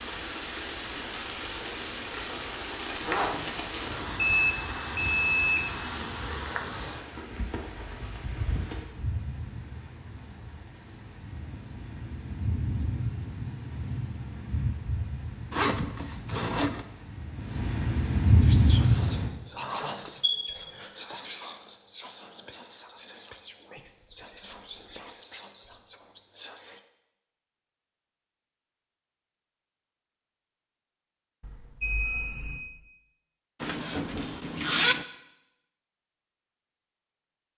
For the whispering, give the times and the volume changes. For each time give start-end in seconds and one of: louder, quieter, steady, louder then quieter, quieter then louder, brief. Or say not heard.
18.4-26.8 quieter.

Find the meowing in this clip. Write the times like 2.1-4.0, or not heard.
not heard.